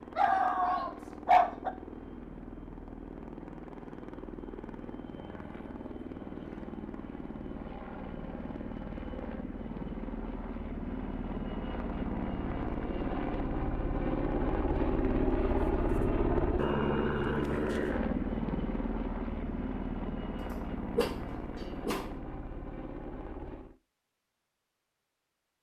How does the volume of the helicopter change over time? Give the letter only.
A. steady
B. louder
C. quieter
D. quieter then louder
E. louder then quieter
E.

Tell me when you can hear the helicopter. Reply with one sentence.
You can hear the helicopter from 0.0 to 23.8 s.